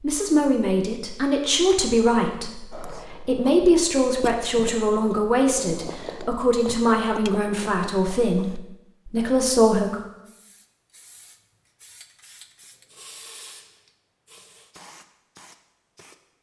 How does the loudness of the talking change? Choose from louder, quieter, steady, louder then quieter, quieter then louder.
steady.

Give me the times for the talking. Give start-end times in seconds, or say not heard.
0.0-10.1.